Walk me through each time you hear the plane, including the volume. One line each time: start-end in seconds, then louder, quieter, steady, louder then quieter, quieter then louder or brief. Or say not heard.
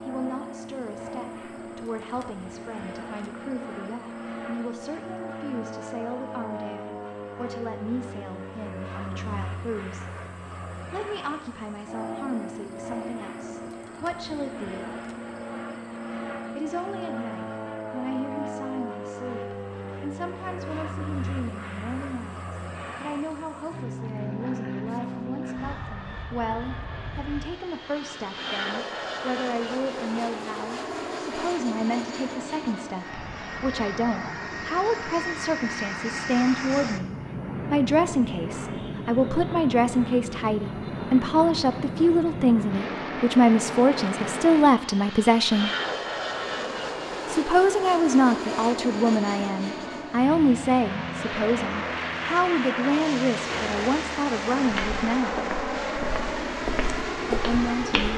0.0-58.1 louder.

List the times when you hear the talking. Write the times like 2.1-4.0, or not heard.
0.1-10.1, 10.9-14.9, 16.6-45.7, 47.2-55.5, 57.3-58.1.